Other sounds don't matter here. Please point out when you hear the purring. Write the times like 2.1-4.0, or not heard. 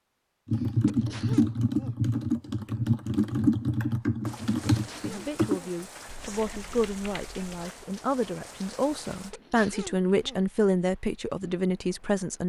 not heard.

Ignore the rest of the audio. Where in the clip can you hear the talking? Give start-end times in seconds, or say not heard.
5.0-12.4.